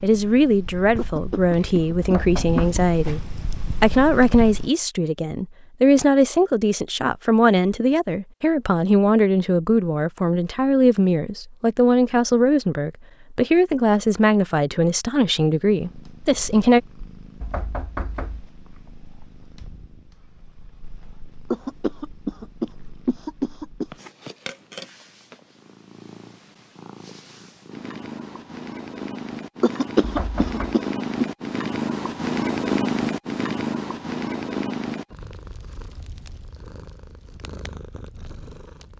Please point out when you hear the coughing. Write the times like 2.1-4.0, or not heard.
0.9-2.8, 21.5-23.9, 29.6-31.2.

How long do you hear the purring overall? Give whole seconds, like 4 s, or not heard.
28 s.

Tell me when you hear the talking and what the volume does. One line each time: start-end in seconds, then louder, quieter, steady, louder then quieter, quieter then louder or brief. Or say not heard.
0.0-16.8 steady.